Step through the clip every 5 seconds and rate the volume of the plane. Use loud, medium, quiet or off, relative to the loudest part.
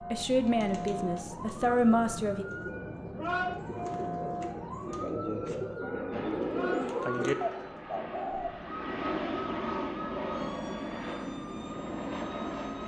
off, loud, loud.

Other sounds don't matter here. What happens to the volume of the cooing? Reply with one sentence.
The volume of the cooing goes up.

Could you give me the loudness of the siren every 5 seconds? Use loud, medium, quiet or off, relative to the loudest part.
loud, loud, medium.